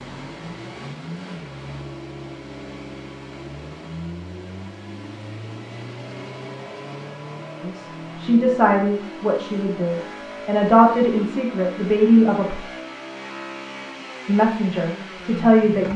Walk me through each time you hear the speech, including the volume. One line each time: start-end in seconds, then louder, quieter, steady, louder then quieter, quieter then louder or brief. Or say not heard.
7.6-12.6 quieter then louder
14.2-15.9 brief.